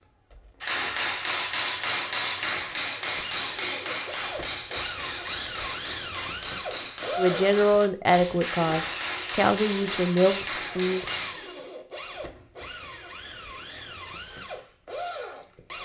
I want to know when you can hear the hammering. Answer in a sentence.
The hammering can be heard from 0.6 to 11.3 s.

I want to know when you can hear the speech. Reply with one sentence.
You can hear the speech from 7.2 to 11.0 s.